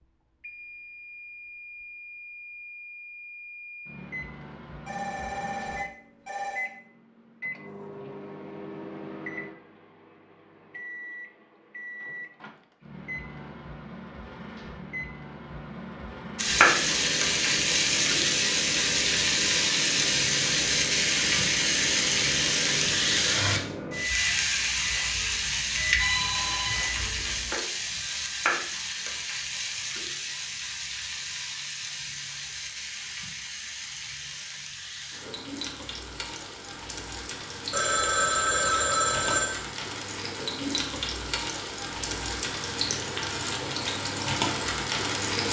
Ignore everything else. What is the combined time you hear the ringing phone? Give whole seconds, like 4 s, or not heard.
5 s.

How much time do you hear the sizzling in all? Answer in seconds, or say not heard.
29 s.